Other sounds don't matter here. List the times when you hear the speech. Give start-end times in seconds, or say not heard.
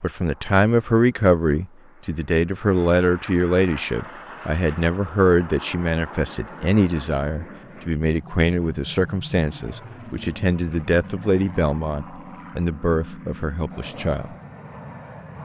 0.0-14.3.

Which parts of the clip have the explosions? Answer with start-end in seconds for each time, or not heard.
not heard.